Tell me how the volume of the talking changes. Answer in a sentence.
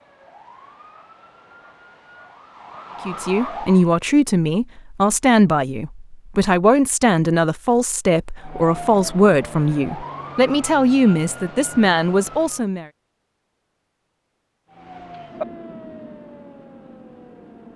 The volume of the talking stays about the same.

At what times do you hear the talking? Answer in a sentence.
The talking can be heard from 3.0 to 12.8 s.